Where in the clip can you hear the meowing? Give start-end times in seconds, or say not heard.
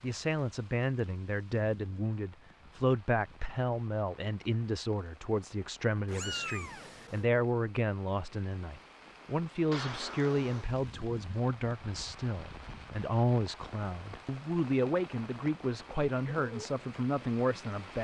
6.0-7.2, 9.7-10.7.